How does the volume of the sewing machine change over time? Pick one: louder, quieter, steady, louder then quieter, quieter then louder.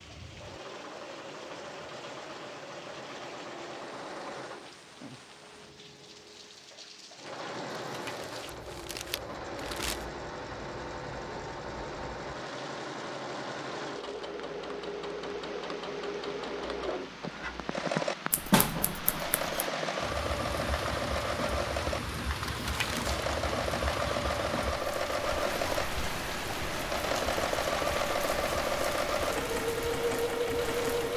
louder.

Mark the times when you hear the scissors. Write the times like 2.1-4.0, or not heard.
18.3-19.6.